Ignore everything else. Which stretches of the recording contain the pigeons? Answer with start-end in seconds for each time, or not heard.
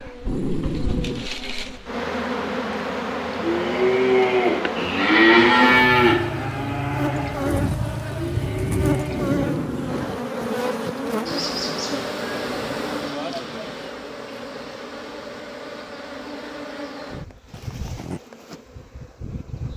7.5-9.1.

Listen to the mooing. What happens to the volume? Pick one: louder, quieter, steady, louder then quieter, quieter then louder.
quieter.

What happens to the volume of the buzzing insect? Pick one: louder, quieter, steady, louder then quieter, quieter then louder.
quieter.